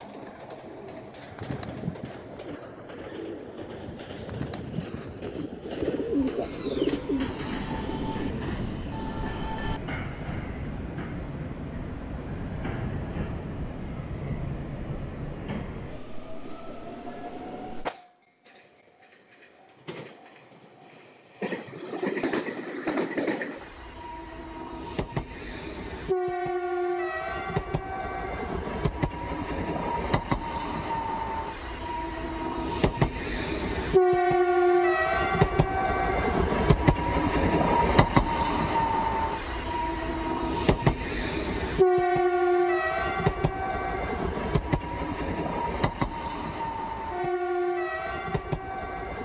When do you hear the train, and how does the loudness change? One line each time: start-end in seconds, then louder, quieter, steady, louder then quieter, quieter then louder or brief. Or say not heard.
0.0-49.2 louder.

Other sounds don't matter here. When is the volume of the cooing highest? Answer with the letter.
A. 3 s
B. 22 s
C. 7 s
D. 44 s
C.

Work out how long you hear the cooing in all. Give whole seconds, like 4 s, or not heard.
8 s.